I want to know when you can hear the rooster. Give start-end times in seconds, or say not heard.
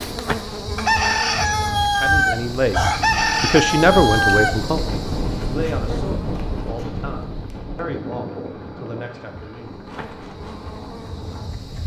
0.8-4.6.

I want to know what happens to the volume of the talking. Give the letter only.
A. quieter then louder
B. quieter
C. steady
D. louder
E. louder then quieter
B.